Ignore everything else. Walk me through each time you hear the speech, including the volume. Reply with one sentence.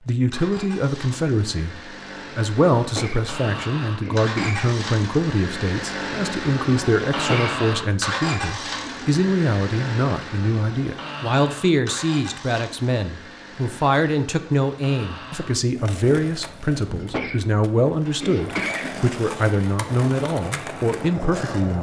The speech can be heard from 0.1 to 21.7 s, at a steady volume.